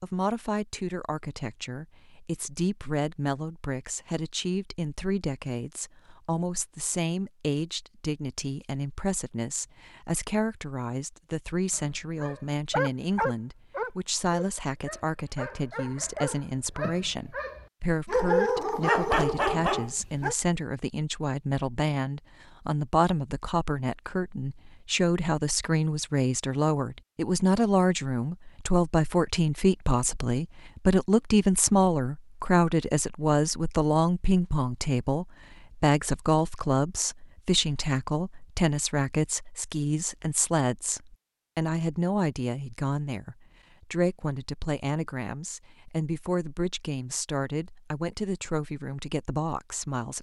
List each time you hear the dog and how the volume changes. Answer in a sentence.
You can hear the dog from 11.7 to 20.4 s, getting quieter then louder.